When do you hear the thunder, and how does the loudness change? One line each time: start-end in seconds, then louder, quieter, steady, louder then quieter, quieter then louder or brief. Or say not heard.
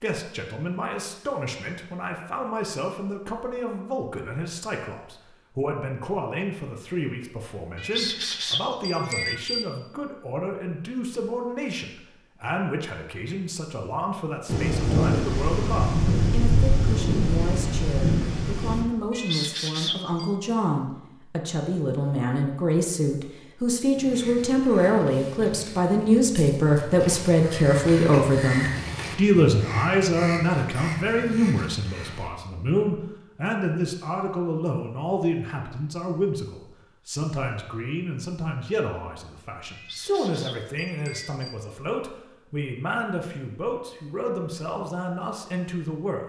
14.4-18.9 steady.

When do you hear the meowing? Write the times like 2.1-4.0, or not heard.
7.8-9.7, 19.1-20.3, 39.7-41.5.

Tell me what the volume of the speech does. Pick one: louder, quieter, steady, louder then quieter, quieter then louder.
louder then quieter.